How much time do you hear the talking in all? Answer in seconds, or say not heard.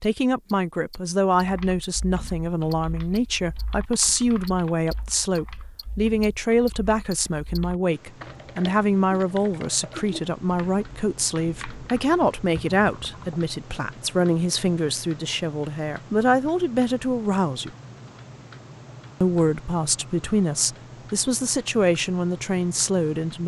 22 s.